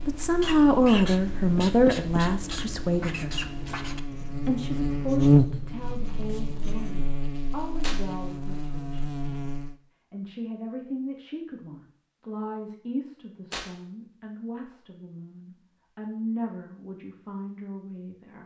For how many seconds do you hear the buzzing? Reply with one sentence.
The buzzing can be heard for 10 seconds in total.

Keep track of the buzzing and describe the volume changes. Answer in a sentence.
The loudness of the buzzing goes up, then down.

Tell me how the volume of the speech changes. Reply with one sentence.
The loudness of the speech goes down.